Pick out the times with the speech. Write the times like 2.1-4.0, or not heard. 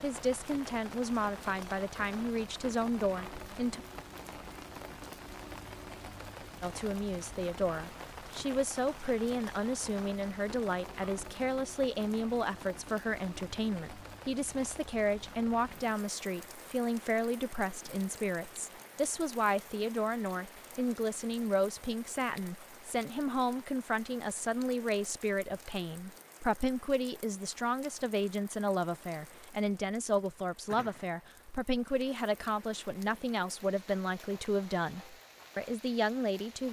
0.0-3.8, 6.6-36.6.